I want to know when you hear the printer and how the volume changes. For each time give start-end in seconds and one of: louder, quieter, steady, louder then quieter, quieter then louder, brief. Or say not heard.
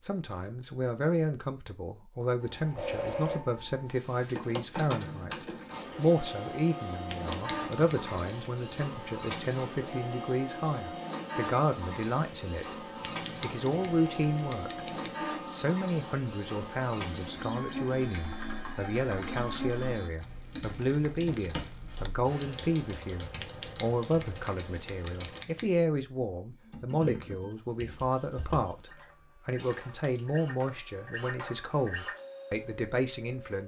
2.4-20.1 steady
27.0-33.6 louder.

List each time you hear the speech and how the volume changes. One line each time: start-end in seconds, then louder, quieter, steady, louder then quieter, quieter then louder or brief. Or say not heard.
0.1-14.8 steady
15.5-33.6 steady.